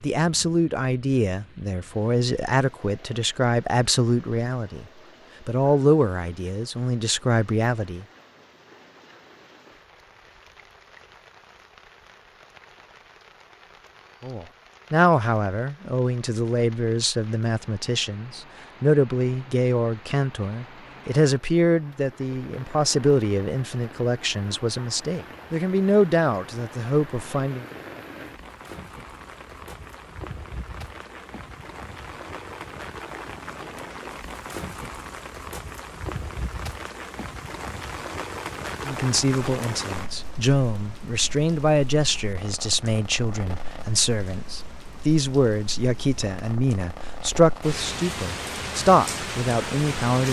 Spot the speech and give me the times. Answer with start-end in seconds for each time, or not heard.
0.0-4.8, 5.5-8.1, 14.2-27.6, 38.9-50.2.